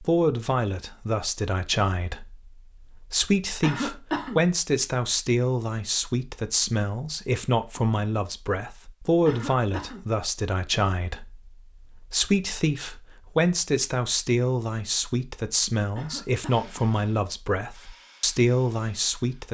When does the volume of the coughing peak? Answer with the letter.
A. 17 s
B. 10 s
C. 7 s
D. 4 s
D.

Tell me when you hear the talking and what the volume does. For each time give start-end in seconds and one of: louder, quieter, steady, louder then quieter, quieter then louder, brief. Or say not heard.
0.0-19.5 steady.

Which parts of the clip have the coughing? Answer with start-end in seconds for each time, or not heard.
3.6-4.4, 9.2-10.1, 15.9-16.8.